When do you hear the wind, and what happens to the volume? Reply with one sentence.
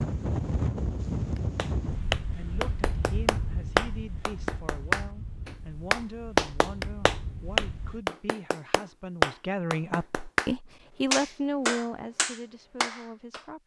You can hear the wind from 0.0 to 8.1 s, getting quieter.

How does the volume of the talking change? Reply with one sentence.
The loudness of the talking goes up.